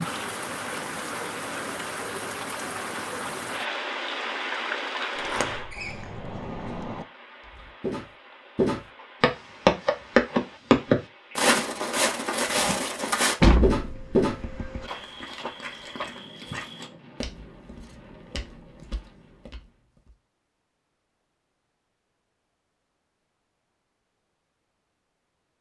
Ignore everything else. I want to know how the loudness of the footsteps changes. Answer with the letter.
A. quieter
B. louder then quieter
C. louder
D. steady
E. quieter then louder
A.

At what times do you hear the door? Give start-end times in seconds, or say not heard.
5.2-7.0, 13.4-14.9.